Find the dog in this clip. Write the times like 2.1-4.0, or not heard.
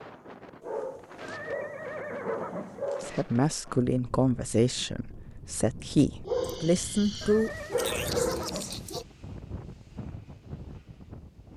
0.6-3.2, 6.2-9.1.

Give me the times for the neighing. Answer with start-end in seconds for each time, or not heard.
1.2-2.9, 7.2-8.8.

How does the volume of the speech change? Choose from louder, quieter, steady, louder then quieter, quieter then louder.
quieter then louder.